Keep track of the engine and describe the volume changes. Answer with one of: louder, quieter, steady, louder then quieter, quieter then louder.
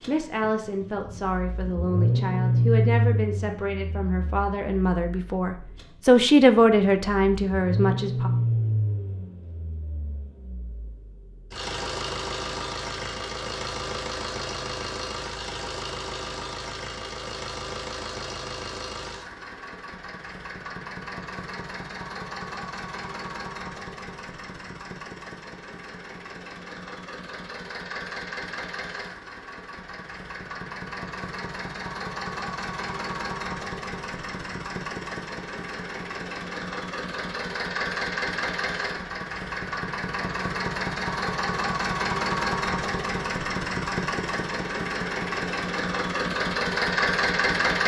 quieter then louder.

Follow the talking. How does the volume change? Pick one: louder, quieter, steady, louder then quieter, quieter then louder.
louder.